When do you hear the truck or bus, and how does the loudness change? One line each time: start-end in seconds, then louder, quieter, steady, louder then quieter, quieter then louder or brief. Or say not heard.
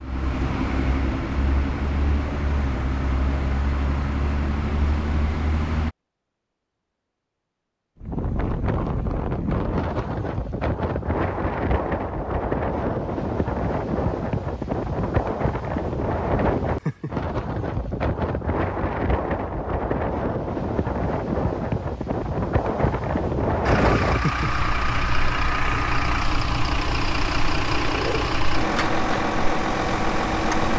0.0-5.9 steady
23.6-30.7 steady.